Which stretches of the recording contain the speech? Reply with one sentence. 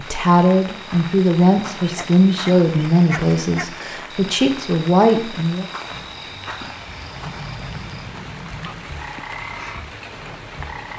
The speech can be heard from 0.0 to 5.7 s.